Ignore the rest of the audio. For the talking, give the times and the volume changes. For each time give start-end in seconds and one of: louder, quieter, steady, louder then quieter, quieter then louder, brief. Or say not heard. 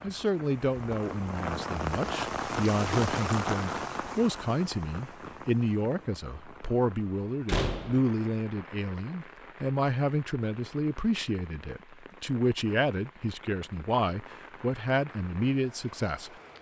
0.0-16.3 steady.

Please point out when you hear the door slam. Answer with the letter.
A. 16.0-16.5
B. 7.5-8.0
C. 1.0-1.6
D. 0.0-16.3
B.